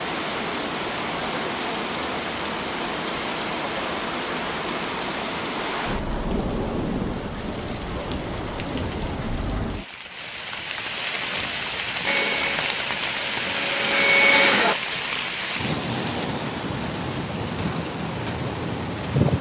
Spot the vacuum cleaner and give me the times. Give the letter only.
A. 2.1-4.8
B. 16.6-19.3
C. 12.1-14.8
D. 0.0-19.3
C.